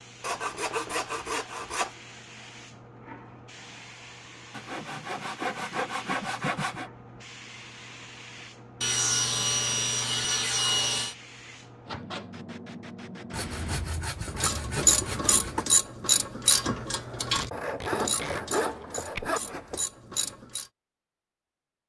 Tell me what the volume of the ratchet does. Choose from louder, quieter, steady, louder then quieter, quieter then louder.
quieter.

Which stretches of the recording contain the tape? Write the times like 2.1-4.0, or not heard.
17.4-19.3.